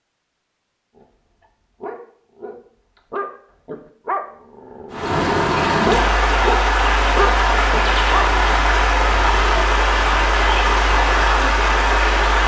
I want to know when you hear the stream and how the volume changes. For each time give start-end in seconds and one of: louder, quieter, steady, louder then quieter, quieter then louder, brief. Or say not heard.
4.9-12.4 steady.